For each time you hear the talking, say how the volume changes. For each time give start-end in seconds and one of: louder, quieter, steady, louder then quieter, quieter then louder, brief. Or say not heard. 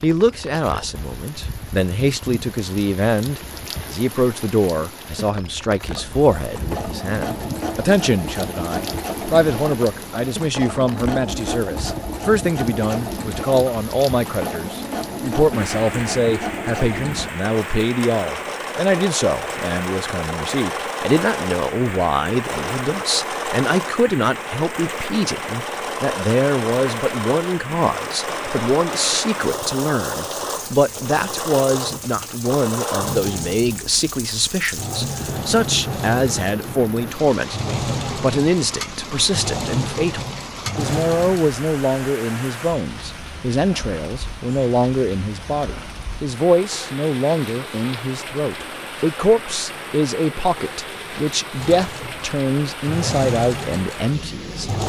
0.0-54.7 steady.